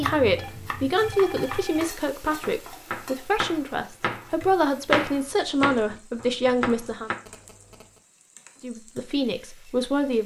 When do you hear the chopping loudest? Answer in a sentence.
The loudest moment of the chopping is at 5 seconds.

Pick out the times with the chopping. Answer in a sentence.
The chopping can be heard from 0.0 to 7.2 s.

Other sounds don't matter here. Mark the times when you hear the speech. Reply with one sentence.
The speech can be heard from 0.0 to 7.1 s and from 8.6 to 10.2 s.